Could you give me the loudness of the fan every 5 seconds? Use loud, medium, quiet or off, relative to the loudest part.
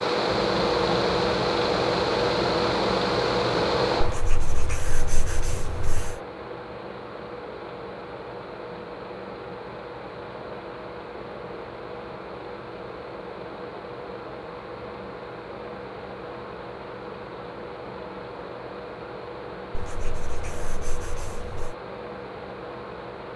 loud, quiet, quiet, quiet, quiet.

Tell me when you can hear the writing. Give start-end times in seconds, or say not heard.
4.0-6.2, 19.7-21.8.